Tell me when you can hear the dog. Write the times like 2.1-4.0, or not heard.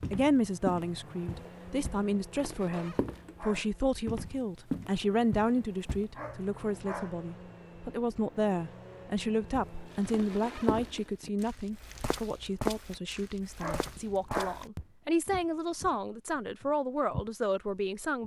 2.6-3.8, 6.2-7.2, 13.6-14.7.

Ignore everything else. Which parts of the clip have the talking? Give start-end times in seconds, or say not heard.
0.1-18.2.